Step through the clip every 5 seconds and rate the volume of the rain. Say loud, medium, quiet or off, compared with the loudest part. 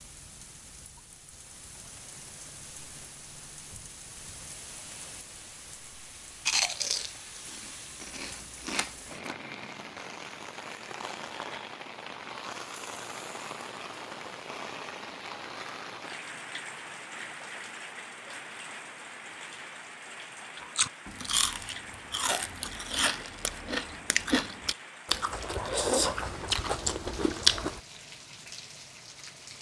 medium, medium, loud, loud, medium, medium.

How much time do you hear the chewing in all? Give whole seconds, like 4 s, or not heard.
10 s.